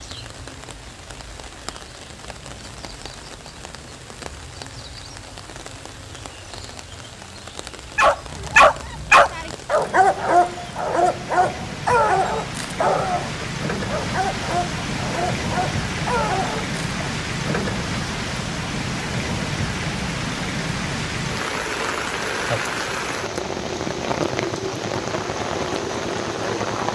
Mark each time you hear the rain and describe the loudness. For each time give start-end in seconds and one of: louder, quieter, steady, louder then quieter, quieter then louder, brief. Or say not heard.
0.0-26.9 louder.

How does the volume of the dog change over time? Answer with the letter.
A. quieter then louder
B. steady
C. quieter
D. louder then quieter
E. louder
C.